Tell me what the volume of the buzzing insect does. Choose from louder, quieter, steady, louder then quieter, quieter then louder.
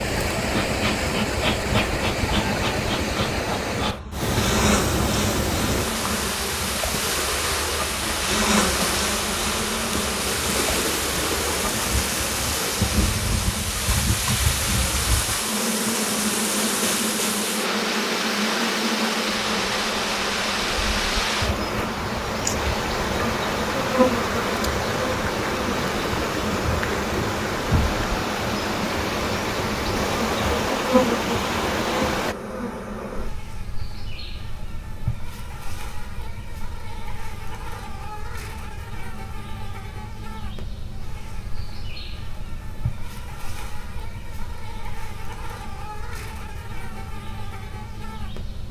quieter.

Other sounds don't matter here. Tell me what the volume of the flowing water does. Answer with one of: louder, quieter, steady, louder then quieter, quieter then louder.
steady.